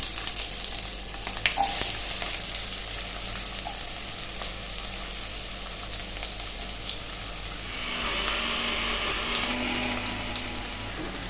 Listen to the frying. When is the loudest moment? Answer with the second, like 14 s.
2 s.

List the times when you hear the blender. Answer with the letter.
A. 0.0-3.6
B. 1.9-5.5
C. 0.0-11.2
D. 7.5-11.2
D.